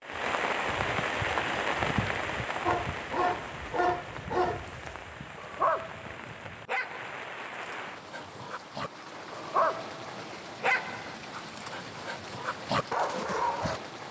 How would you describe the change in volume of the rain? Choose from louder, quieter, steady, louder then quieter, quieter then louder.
quieter.